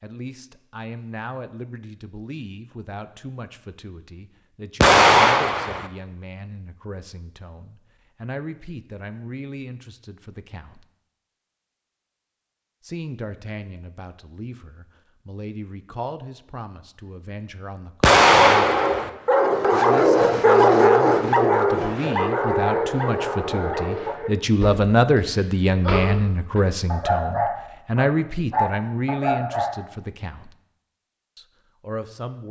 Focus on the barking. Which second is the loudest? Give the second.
21 s.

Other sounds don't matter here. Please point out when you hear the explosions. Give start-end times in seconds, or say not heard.
4.8-5.9, 18.0-19.1.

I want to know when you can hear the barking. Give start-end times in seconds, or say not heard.
18.4-29.8.